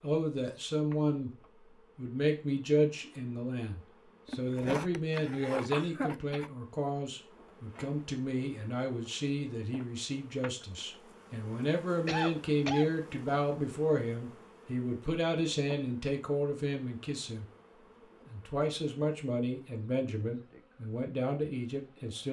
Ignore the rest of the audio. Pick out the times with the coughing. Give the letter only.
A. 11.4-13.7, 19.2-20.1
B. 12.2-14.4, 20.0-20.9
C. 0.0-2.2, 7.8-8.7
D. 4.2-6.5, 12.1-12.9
D.